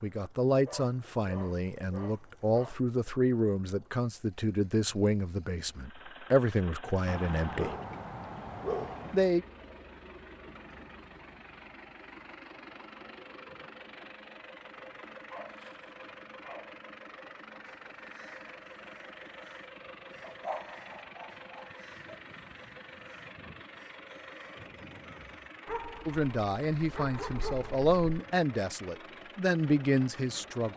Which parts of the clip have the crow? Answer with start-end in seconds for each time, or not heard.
17.6-25.4.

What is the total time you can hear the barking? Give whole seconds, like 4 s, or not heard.
11 s.